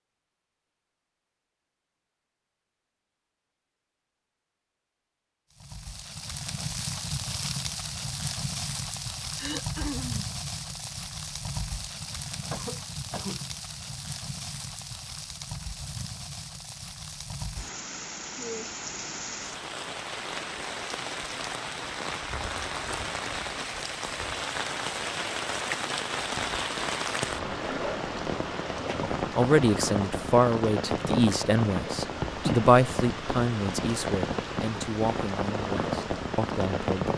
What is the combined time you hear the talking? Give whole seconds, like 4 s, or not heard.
8 s.